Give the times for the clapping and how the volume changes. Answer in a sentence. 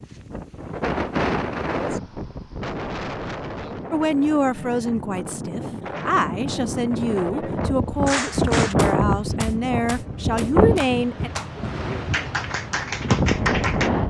You can hear the clapping from 8.1 to 13.9 s, getting quieter then louder.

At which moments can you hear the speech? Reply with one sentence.
You can hear the speech from 3.9 to 11.3 s.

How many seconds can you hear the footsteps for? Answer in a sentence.
The footsteps can't be heard in this clip.